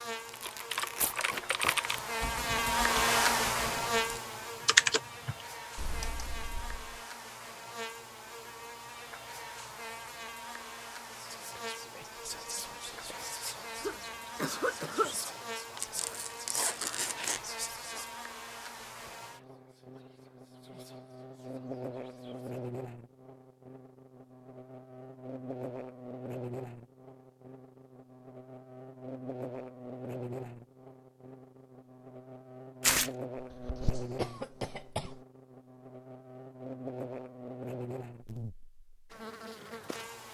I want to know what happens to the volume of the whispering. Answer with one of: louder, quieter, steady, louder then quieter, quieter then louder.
quieter.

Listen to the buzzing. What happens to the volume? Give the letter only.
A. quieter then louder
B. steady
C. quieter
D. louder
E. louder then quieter
C.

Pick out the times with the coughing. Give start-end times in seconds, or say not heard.
13.8-15.2, 33.4-35.1.